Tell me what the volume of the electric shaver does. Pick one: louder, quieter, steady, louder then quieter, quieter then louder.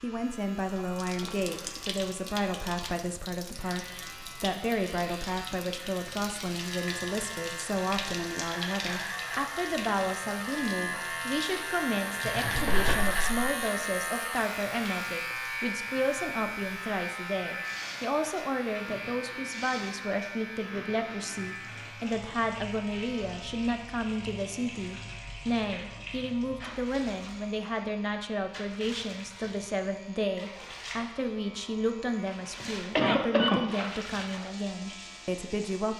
louder then quieter.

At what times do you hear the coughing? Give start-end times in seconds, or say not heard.
1.4-2.0, 32.2-34.0.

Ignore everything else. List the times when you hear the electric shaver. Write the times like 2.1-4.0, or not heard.
0.0-35.9.